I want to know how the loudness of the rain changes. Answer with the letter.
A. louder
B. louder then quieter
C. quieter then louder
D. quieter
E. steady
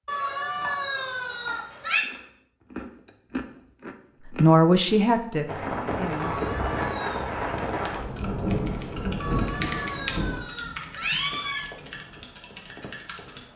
D.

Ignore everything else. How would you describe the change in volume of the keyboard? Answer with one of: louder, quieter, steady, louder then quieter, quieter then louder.
louder then quieter.